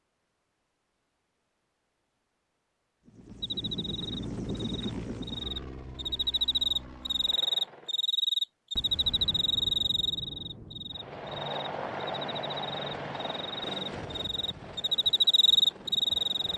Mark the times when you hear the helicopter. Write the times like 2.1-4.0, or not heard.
3.0-8.1, 10.9-16.5.